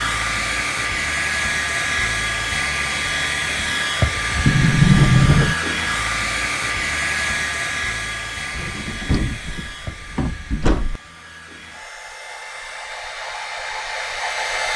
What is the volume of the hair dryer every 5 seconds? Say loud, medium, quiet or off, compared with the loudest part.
loud, loud, medium.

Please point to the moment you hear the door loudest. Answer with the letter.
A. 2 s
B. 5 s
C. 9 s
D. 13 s
B.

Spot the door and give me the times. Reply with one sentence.
You can hear the door from 4.5 to 5.5 s and from 8.5 to 11.0 s.